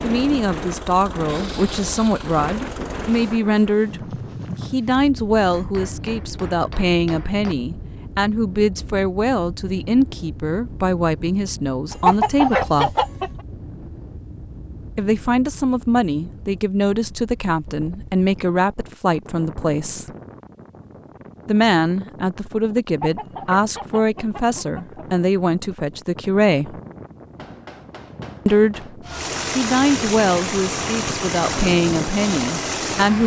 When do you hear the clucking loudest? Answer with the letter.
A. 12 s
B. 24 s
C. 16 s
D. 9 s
A.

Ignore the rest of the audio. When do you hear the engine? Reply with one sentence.
You can hear the engine from 0.0 to 3.2 s and from 29.0 to 33.2 s.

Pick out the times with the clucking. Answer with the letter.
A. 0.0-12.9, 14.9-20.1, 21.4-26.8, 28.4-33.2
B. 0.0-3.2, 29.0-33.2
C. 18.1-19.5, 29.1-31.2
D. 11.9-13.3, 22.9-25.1
D.